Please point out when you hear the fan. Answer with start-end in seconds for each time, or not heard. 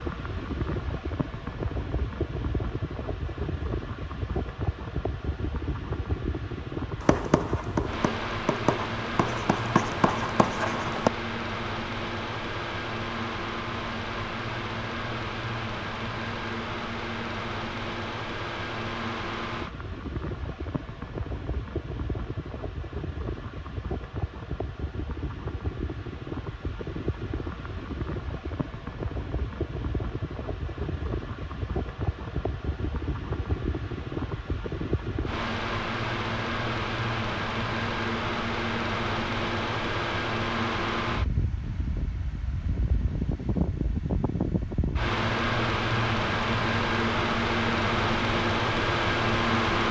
0.0-49.8.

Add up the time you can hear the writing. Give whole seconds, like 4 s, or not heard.
4 s.